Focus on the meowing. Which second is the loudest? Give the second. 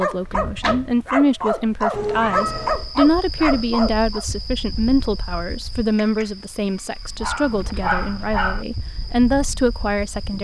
2 s.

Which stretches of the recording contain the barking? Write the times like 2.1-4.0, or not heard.
0.0-4.2, 7.2-8.7.